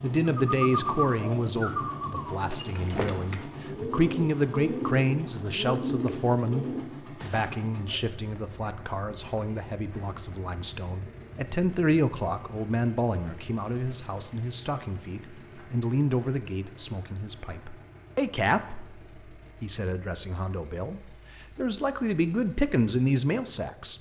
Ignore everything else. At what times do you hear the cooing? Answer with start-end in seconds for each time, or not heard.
0.5-7.5.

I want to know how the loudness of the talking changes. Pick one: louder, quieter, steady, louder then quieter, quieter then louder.
steady.